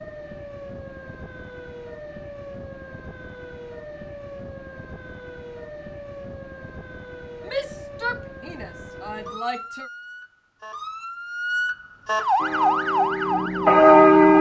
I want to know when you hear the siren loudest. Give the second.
13 s.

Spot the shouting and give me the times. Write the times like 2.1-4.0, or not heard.
7.5-9.9.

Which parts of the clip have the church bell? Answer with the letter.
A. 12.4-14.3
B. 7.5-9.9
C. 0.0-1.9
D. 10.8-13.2
A.